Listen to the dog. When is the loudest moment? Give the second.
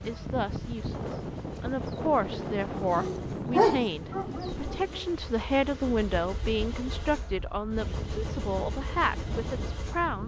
4 s.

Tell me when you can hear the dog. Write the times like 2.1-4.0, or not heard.
2.5-5.2.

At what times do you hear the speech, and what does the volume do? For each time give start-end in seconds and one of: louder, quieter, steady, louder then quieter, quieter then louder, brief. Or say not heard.
0.1-10.2 steady.